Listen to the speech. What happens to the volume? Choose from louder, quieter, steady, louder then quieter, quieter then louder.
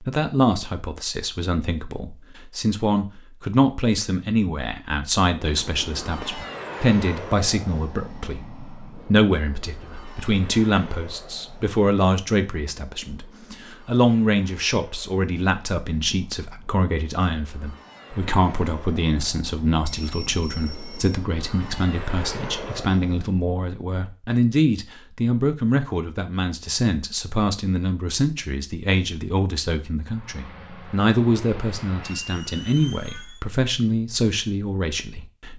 steady.